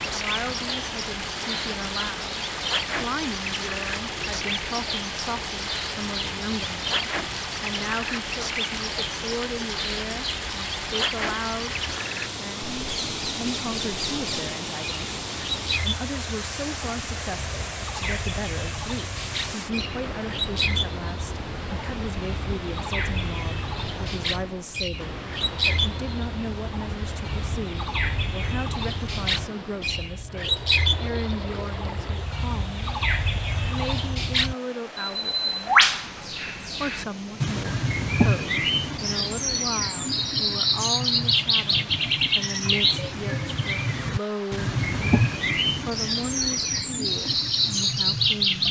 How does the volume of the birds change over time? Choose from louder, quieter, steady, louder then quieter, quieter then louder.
louder.